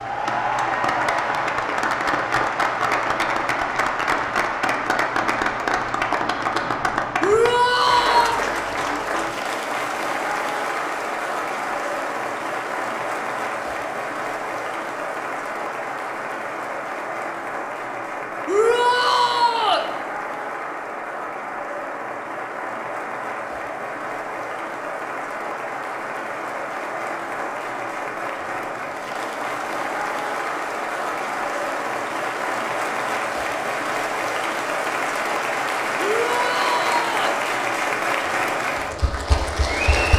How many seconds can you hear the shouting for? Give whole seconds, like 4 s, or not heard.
4 s.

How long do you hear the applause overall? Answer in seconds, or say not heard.
40 s.